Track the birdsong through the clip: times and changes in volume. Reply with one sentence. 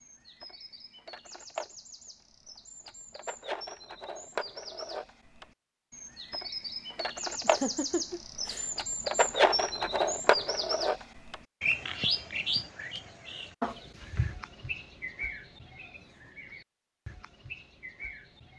The birdsong can be heard from 0.0 to 18.5 s, getting louder then quieter.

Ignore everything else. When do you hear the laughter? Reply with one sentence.
You can hear the laughter from 7.3 to 8.7 s.